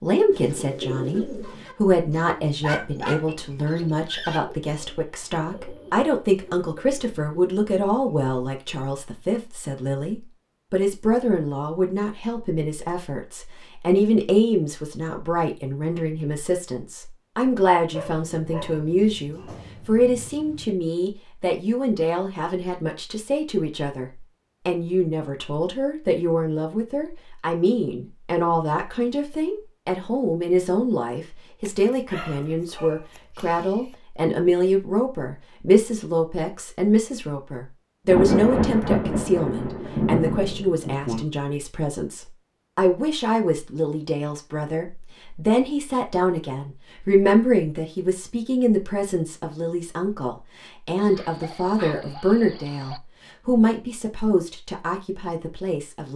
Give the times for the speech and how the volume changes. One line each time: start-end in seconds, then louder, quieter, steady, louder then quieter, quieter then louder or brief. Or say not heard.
0.0-56.1 steady.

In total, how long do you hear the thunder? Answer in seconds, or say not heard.
3 s.